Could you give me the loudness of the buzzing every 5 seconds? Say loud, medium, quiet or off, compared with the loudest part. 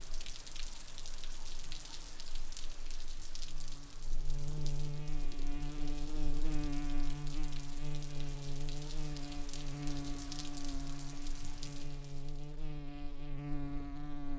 medium, loud, loud.